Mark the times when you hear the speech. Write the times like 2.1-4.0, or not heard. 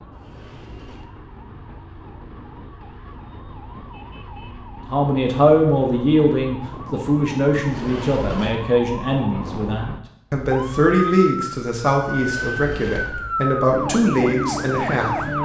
4.9-15.2.